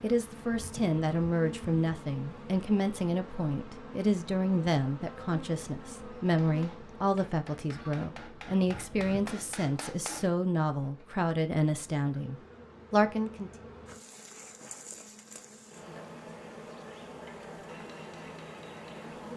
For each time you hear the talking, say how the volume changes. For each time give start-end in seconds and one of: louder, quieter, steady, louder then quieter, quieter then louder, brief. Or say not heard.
0.0-13.5 steady.